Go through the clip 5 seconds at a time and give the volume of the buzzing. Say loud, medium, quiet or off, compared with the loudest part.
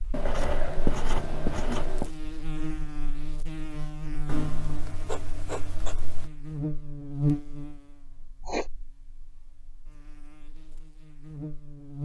loud, loud, medium.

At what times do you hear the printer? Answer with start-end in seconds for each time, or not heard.
not heard.